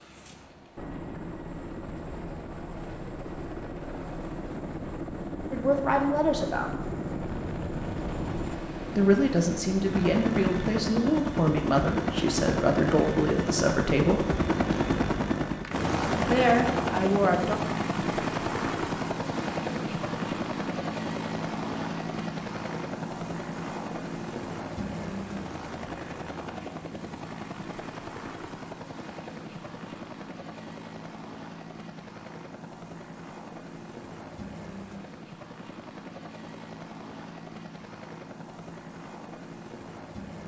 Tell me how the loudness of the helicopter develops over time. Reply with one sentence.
The loudness of the helicopter goes up, then down.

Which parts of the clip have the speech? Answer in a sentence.
You can hear the speech from 5.5 to 6.8 s, from 8.9 to 14.2 s and from 16.2 to 17.6 s.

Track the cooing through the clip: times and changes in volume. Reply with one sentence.
The cooing can't be heard in this clip.